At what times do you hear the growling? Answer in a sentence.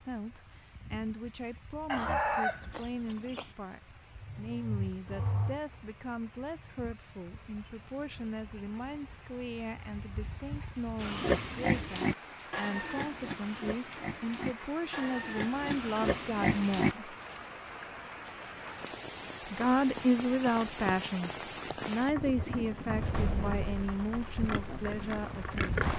You can hear the growling from 4.2 to 5.6 s.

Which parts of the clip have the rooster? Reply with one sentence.
The rooster can be heard from 1.9 to 3.5 s.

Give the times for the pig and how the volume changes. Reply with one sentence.
The pig can be heard from 11.0 to 16.9 s, getting quieter then louder; and briefly from 24.4 to 25.9 s.